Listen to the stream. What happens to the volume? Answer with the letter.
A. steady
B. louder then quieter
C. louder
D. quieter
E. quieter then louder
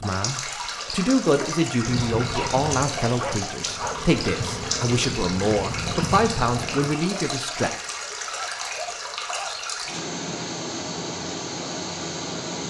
A.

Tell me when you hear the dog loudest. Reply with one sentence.
The loudest moment of the dog is at 3 seconds.